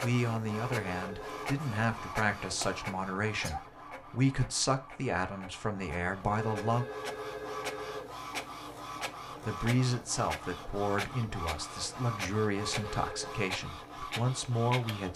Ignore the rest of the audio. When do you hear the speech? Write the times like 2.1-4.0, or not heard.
0.0-6.8, 9.4-15.1.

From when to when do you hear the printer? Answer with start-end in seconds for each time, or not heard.
0.0-15.1.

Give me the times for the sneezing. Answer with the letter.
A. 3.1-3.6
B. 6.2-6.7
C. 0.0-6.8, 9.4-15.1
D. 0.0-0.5
A.